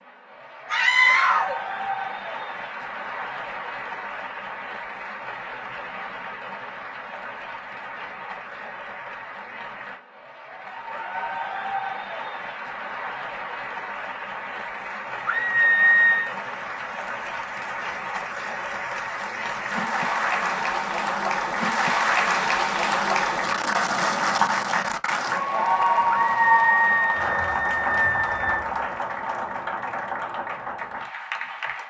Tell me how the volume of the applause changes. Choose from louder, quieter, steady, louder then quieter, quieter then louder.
louder.